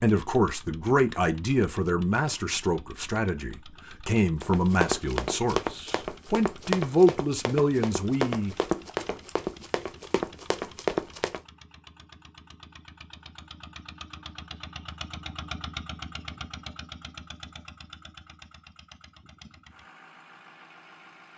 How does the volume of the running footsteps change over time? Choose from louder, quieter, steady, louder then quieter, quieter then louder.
steady.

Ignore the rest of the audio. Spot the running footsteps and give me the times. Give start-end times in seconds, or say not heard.
4.4-11.4.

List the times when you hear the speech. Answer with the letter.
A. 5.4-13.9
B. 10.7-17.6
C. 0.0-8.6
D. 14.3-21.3
C.